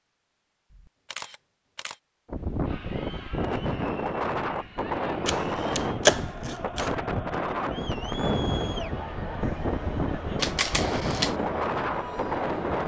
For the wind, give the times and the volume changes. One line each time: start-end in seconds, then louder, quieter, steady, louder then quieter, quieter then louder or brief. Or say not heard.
2.2-12.8 steady.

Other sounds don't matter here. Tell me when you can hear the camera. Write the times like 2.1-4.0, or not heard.
0.7-1.9, 5.2-7.0, 10.3-11.3.